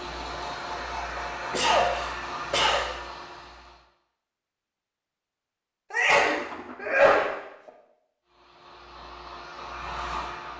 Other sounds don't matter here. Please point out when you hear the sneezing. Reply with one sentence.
You can hear the sneezing from 1.5 to 2.9 s and from 5.9 to 7.3 s.